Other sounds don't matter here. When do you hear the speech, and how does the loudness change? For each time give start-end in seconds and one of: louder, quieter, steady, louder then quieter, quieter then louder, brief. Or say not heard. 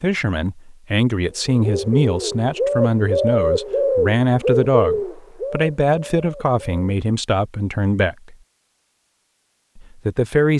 0.0-8.3 steady
9.8-10.5 brief.